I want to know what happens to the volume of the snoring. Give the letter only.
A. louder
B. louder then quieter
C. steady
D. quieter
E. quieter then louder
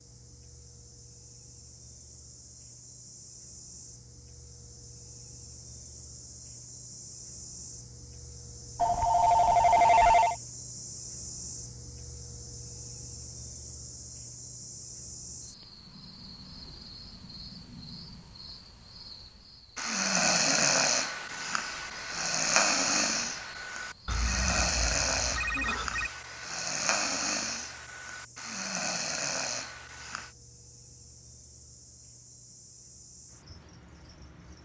D.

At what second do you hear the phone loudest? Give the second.
10 s.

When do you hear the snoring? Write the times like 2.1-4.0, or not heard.
19.8-30.3.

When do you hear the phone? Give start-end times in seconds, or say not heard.
8.8-10.3, 24.1-26.1.